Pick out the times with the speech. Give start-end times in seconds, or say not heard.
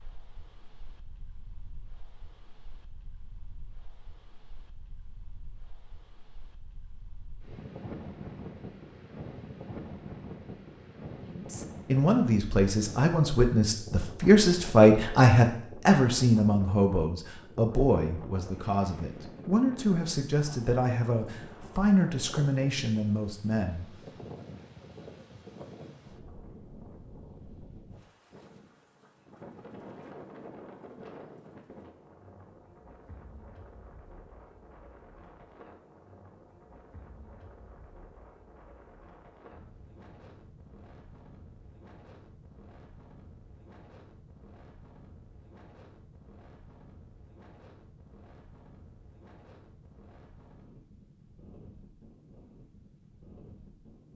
11.2-23.9.